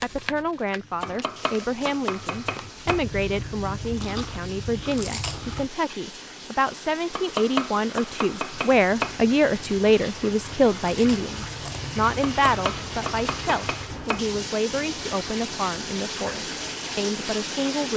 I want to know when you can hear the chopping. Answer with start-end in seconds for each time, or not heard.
1.0-3.0, 7.1-9.2, 12.2-14.2.